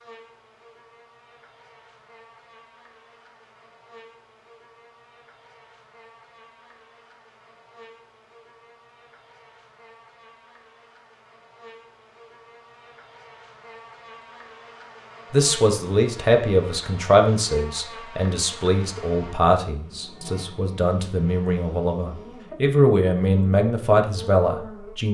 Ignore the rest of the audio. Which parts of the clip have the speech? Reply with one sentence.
You can hear the speech from 15.3 to 25.1 s.